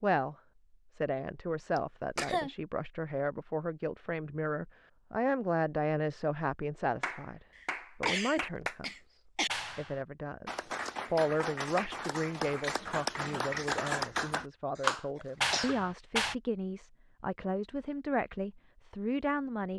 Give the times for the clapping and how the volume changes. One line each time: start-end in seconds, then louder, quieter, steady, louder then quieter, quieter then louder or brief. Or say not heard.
7.0-8.8 brief
9.4-16.4 louder.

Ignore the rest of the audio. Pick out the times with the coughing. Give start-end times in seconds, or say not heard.
1.8-2.5, 7.5-9.5, 14.8-15.8.